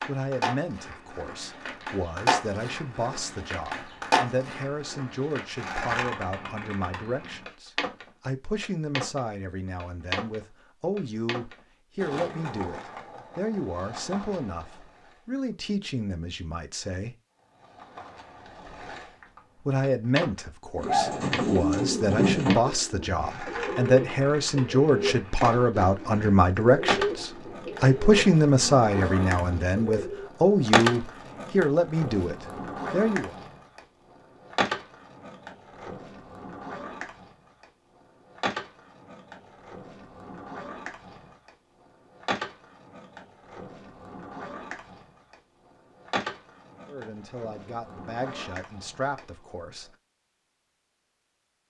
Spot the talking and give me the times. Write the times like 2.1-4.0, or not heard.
0.1-17.1, 19.6-33.4, 46.9-50.0.